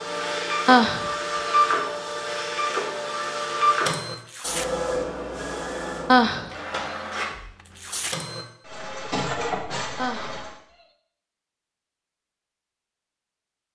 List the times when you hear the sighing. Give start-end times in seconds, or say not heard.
0.7-1.1, 6.0-6.5, 9.9-10.4.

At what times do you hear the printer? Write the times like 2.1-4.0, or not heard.
0.0-10.6.